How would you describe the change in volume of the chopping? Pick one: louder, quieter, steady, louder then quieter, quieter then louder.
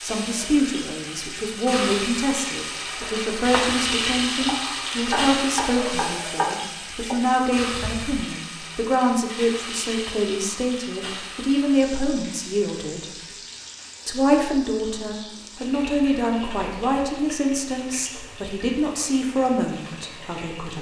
louder then quieter.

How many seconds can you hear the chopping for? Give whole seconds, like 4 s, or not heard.
5 s.